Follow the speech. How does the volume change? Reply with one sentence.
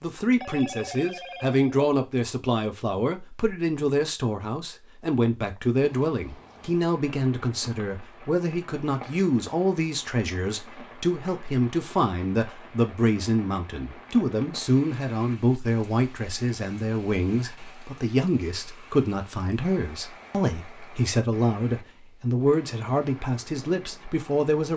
The volume of the speech stays about the same.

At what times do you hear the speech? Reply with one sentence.
The speech can be heard from 0.0 to 24.7 s.